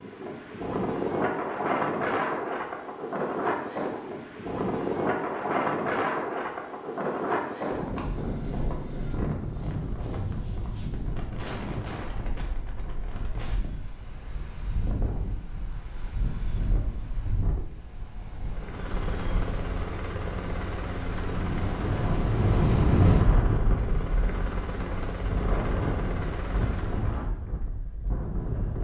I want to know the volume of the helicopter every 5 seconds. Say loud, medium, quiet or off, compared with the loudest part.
off, off, off, loud, loud, loud.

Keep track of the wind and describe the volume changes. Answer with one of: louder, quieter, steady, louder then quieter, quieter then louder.
quieter then louder.